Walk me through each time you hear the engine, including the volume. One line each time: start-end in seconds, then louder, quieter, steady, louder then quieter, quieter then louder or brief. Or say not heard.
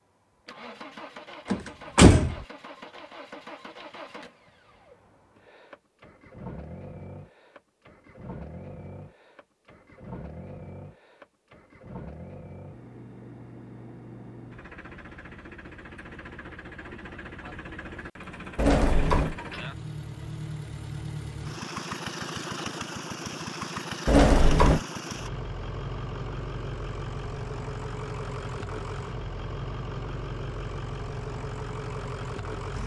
0.1-32.8 louder.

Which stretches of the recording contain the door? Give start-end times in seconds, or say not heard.
1.5-2.4, 18.6-19.4, 24.1-24.8.